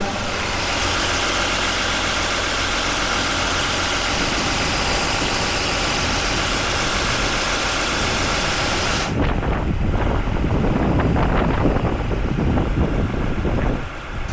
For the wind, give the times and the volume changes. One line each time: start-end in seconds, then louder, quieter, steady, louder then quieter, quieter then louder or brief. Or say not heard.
4.1-14.2 louder.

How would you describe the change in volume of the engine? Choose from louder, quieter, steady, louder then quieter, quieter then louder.
quieter.